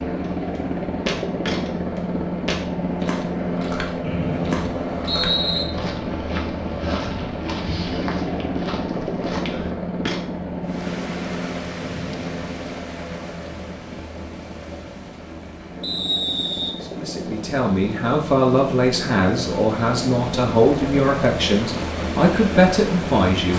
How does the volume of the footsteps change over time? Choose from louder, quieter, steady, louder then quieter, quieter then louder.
quieter.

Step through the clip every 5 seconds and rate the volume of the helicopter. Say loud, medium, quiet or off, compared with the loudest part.
loud, loud, medium, medium, loud.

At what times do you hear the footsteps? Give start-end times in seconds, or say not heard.
0.2-10.2.